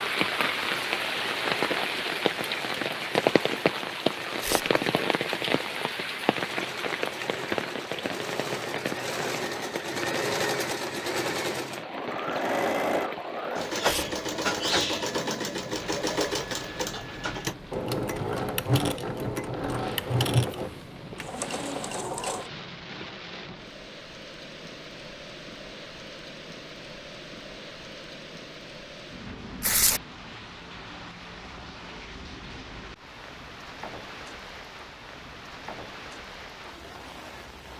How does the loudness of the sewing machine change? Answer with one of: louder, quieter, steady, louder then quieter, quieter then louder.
louder.